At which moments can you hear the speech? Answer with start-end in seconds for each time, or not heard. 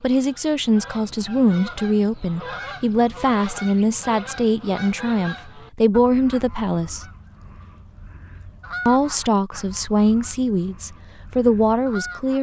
0.0-7.0, 8.8-12.3.